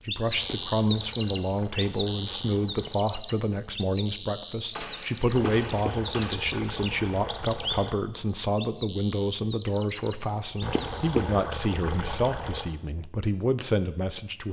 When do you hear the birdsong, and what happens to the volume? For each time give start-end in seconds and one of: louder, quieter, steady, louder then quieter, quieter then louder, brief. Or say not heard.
0.0-11.1 quieter.